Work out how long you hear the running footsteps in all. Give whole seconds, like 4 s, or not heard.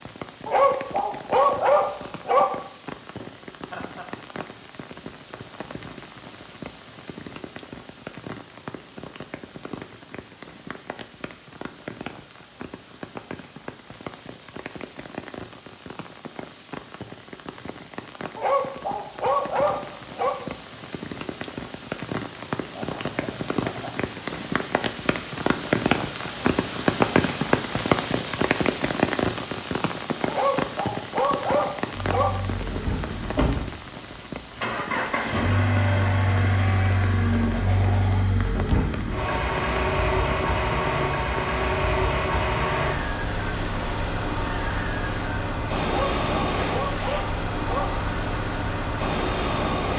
not heard.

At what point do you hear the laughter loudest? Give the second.
38 s.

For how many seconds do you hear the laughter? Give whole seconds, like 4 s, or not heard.
3 s.